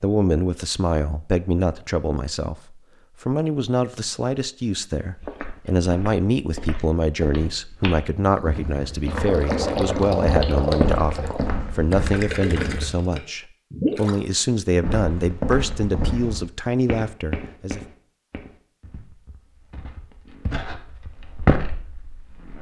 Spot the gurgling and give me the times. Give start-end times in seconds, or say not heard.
8.2-14.2.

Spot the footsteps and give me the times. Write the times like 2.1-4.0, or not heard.
5.0-13.0, 14.8-22.5.